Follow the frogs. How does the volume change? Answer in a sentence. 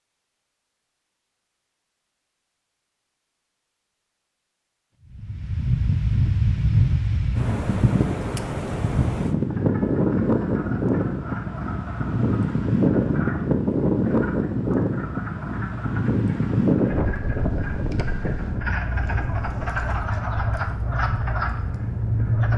The volume of the frogs goes up.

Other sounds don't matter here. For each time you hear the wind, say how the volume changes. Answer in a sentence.
The wind can be heard from 5.1 to 22.5 s, getting quieter.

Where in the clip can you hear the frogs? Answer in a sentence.
You can hear the frogs from 9.4 to 22.5 s.